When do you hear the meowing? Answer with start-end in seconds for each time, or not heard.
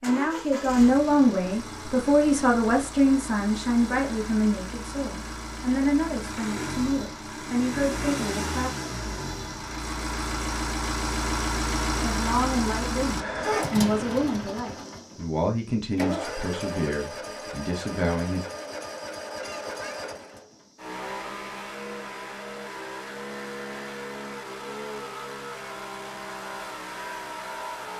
19.4-20.0.